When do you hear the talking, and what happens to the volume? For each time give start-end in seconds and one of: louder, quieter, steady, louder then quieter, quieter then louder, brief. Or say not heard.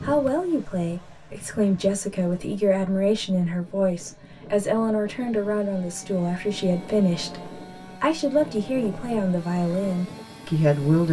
0.0-11.0 steady.